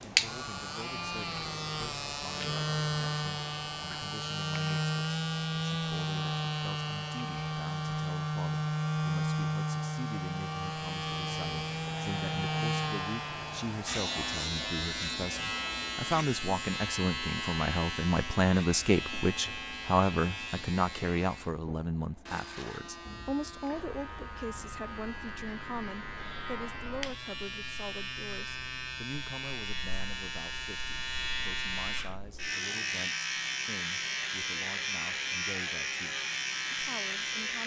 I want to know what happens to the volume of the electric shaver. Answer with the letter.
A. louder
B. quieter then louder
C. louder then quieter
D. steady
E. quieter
B.